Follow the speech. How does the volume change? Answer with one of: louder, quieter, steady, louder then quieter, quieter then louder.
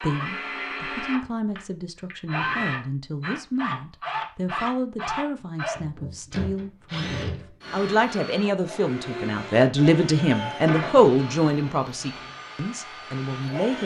louder.